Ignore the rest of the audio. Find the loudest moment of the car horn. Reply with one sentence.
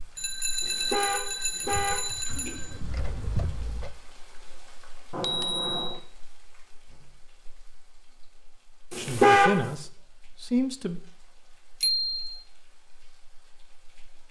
The loudest moment of the car horn is at 9 seconds.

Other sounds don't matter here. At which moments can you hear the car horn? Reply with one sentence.
The car horn can be heard from 0.6 to 2.5 s and from 8.9 to 9.6 s.